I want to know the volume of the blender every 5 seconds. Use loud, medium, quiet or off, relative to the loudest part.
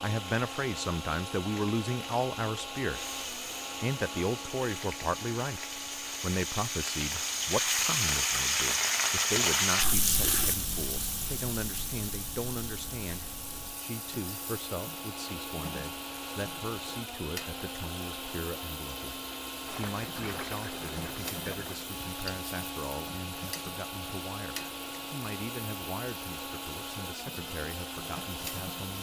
loud, medium, medium, loud, loud, loud.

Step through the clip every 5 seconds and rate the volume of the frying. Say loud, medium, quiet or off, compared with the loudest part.
quiet, loud, medium, quiet, quiet, quiet.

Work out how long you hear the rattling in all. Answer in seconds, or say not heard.
2 s.